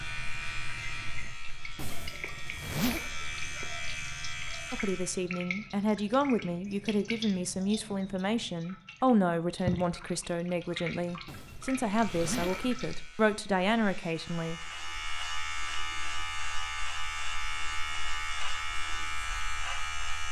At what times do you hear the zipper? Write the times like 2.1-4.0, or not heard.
1.8-3.1, 11.2-12.8.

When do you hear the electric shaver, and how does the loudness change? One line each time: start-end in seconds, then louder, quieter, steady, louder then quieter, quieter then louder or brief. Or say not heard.
0.0-5.2 quieter then louder
11.8-20.2 louder.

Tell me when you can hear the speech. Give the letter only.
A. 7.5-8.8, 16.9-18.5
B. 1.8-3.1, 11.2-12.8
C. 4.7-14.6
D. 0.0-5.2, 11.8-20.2
C.